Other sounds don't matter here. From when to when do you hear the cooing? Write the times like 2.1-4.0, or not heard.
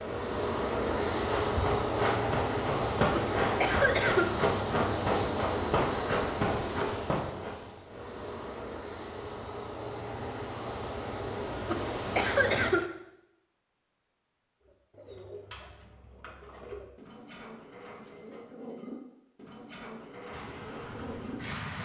14.6-21.8.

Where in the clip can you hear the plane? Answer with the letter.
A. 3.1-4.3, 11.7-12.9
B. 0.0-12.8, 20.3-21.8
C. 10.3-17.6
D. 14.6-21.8
B.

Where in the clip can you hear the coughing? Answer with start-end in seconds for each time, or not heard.
3.1-4.3, 11.7-12.9.